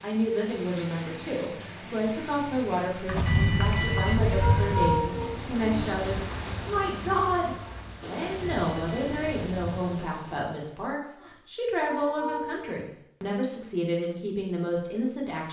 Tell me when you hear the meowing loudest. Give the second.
5 s.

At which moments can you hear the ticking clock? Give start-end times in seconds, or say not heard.
not heard.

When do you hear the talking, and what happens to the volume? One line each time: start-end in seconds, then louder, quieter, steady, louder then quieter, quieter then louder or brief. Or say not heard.
0.0-15.4 steady.